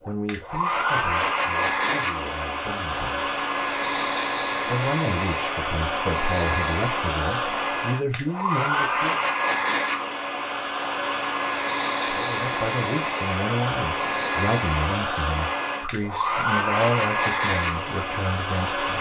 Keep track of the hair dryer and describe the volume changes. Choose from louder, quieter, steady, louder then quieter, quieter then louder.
steady.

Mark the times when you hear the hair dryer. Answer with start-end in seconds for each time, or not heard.
0.0-18.9.